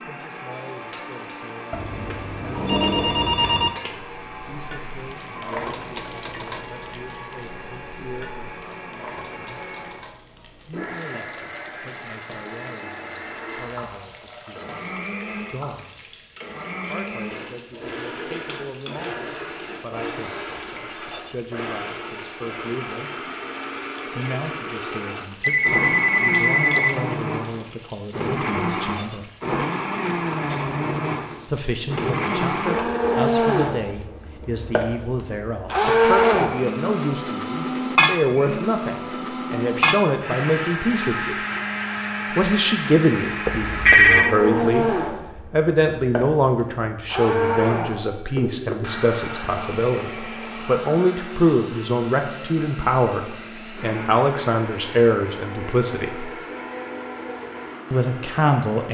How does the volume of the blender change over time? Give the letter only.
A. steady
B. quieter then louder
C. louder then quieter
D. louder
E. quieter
C.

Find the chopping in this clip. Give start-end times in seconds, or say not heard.
not heard.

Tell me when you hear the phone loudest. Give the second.
44 s.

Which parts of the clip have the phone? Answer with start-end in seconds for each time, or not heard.
1.7-3.7, 25.4-27.1, 43.5-44.4.